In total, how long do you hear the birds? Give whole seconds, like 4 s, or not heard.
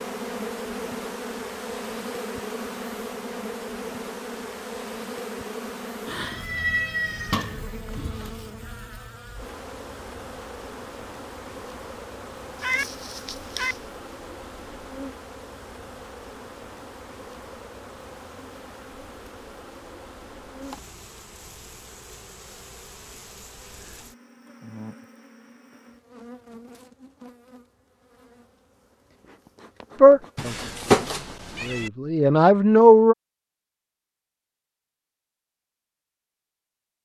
not heard.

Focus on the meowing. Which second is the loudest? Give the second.
31 s.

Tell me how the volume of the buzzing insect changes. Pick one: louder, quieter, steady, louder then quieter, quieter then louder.
quieter.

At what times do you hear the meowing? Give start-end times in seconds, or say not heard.
6.1-8.3, 12.6-13.8, 30.4-31.9.